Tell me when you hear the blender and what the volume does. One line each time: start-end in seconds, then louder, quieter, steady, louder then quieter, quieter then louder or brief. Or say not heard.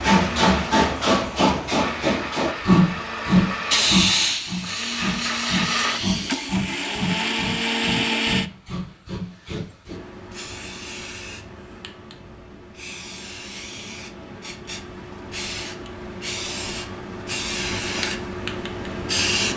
0.1-8.5 louder.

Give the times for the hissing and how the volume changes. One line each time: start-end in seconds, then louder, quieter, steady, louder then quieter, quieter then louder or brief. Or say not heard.
0.0-19.5 quieter then louder.